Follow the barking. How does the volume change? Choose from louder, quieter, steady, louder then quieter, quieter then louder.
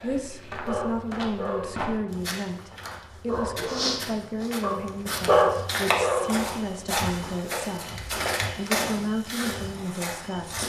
quieter then louder.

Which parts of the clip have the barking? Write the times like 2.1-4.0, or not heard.
0.5-6.4.